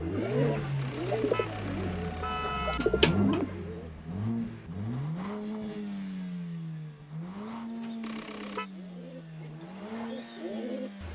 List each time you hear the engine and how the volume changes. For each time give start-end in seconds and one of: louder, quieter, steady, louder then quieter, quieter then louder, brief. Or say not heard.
0.0-11.0 quieter.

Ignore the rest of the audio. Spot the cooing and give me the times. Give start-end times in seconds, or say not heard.
0.0-3.9, 7.5-11.0.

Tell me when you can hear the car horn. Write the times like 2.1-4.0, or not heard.
0.8-2.8, 8.0-8.7.